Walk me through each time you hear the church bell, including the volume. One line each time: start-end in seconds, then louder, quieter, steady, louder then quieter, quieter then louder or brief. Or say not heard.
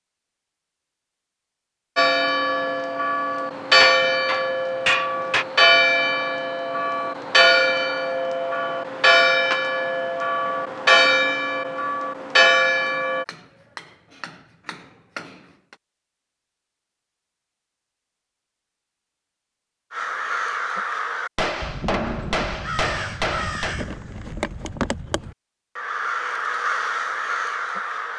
1.9-13.2 steady.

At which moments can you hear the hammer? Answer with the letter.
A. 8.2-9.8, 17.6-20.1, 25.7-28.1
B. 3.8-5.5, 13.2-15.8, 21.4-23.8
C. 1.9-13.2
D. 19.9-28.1
B.